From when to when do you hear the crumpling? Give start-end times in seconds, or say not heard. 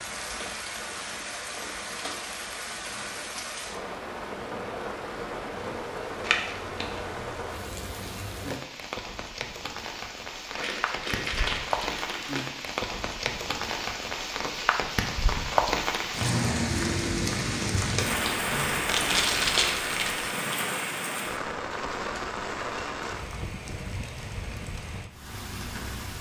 6.2-7.0, 10.5-12.5, 17.8-20.4.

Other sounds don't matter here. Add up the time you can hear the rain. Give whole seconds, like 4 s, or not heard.
26 s.